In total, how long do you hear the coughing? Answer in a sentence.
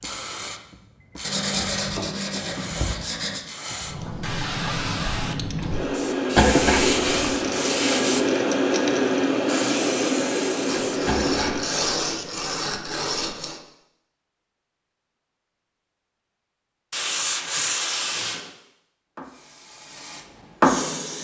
The coughing can be heard for 2 seconds in total.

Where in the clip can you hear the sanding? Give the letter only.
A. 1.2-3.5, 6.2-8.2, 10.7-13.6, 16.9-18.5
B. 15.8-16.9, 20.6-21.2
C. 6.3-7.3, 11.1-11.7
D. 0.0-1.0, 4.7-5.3
A.